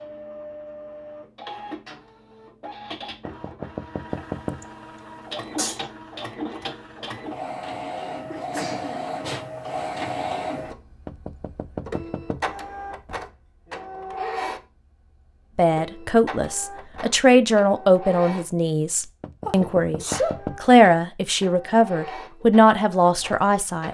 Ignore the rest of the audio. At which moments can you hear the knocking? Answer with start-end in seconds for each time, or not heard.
3.2-4.7, 11.1-12.4, 19.2-20.6.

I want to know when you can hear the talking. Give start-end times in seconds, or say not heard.
15.6-23.9.